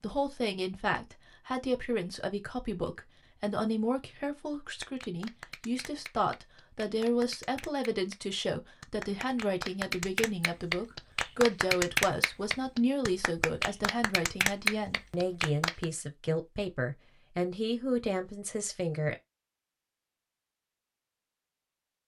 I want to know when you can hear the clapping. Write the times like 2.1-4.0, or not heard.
4.7-15.8.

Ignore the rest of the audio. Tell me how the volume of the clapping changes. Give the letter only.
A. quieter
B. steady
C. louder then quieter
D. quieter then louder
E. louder
E.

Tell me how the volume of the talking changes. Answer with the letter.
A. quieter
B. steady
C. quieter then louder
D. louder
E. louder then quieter
B.